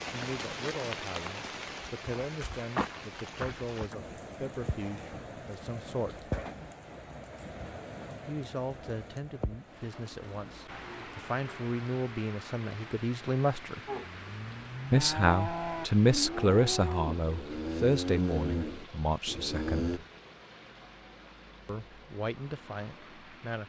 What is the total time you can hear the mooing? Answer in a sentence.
The mooing can be heard for 6 seconds in total.